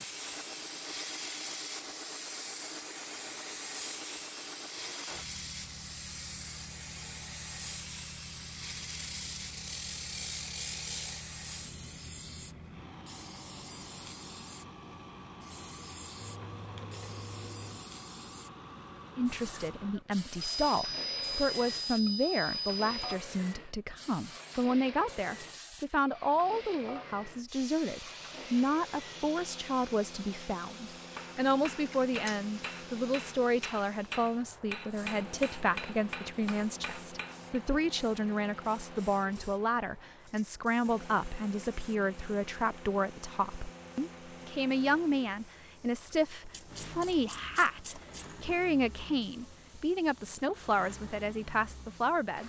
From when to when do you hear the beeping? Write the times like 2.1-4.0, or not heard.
20.4-23.1.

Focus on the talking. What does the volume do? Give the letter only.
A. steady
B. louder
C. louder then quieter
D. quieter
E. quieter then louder
A.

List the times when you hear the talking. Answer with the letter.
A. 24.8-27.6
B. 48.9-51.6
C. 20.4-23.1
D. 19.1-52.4
D.